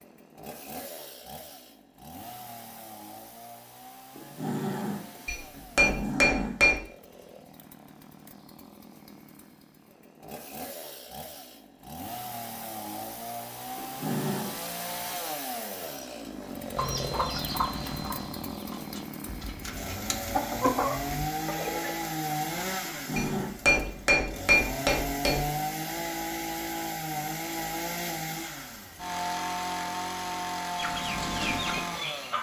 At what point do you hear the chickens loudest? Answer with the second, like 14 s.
21 s.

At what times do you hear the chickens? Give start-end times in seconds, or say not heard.
16.8-21.9, 30.8-32.3.